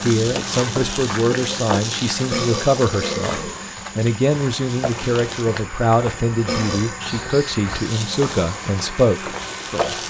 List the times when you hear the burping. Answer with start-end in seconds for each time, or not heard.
2.2-3.5, 6.4-7.0.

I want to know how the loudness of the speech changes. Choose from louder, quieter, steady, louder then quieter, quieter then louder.
steady.